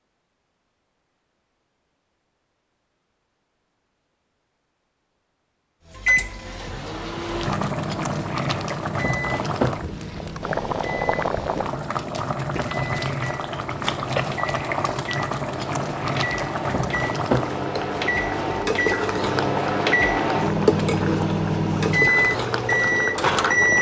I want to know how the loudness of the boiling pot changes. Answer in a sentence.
The loudness of the boiling pot stays about the same.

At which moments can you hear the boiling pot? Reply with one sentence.
The boiling pot can be heard from 7.2 to 23.7 s.